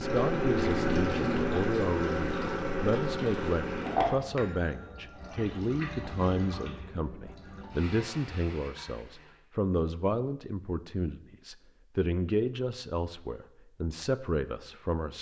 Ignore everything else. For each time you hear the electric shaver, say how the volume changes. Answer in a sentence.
You can't hear the electric shaver here.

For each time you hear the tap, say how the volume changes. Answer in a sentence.
You can hear the tap from 0.0 to 9.4 s, getting quieter.